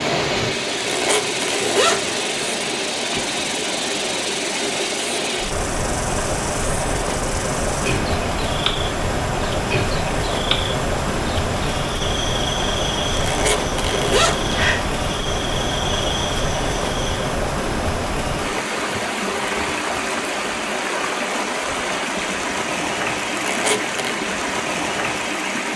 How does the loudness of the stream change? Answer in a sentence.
The loudness of the stream stays about the same.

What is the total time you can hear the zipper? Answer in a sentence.
The zipper can be heard for 4 seconds in total.